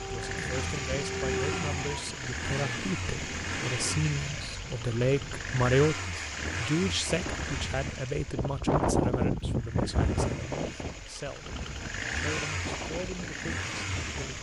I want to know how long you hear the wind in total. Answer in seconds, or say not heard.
14 s.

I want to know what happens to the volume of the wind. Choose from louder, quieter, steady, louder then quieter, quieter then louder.
louder then quieter.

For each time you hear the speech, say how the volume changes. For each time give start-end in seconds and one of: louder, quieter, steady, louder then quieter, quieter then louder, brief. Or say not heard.
0.0-14.3 louder then quieter.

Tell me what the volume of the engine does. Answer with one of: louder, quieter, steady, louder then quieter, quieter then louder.
quieter then louder.